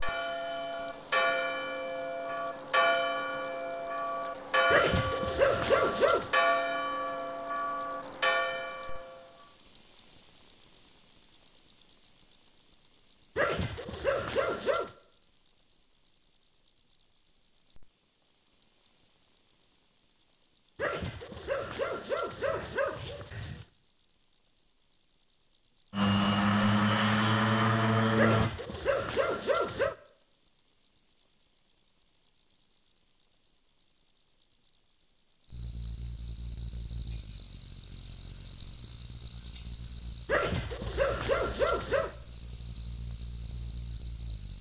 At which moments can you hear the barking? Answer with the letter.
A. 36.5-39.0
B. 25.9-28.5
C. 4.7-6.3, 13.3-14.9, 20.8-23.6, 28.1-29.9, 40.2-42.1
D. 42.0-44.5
C.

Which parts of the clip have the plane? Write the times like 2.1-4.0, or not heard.
25.9-28.5.